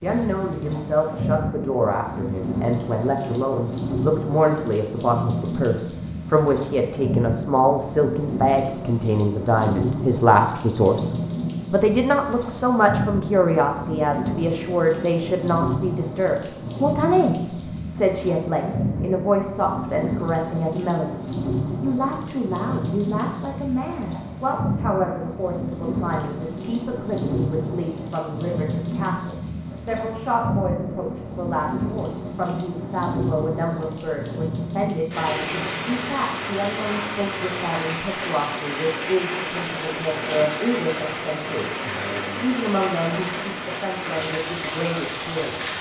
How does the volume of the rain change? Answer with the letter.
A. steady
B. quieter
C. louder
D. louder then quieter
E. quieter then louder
A.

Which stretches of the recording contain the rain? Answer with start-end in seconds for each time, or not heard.
0.0-45.7.